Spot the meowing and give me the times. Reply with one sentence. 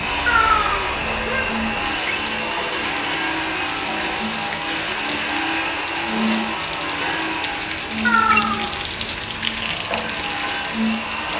The meowing can be heard from 0.2 to 1.4 s and from 8.1 to 8.7 s.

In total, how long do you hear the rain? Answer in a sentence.
The rain can be heard for 11 seconds in total.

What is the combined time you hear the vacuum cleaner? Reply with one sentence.
The vacuum cleaner can be heard for 11 seconds in total.